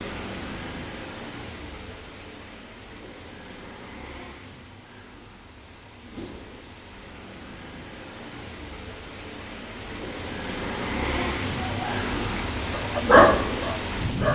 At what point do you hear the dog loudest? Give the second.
13 s.